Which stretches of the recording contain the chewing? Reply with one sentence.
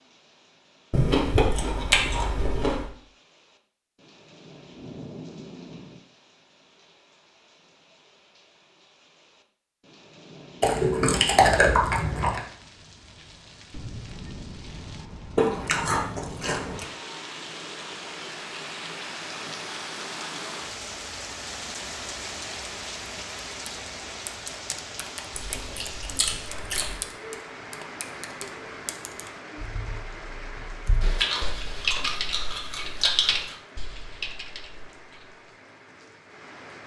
You can hear the chewing from 0.9 to 2.9 s, from 10.6 to 12.4 s, from 15.3 to 16.9 s, from 25.3 to 27.1 s and from 31.0 to 33.5 s.